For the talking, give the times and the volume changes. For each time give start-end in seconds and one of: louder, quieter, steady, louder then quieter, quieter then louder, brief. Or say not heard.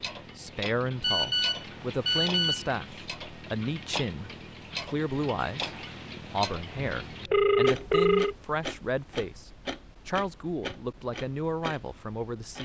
0.3-12.6 steady.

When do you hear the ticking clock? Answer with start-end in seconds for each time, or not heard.
0.0-12.6.